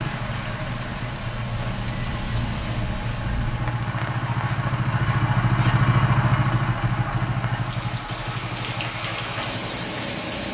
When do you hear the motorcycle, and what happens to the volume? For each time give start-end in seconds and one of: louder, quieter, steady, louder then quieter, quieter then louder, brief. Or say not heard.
0.0-10.5 louder then quieter.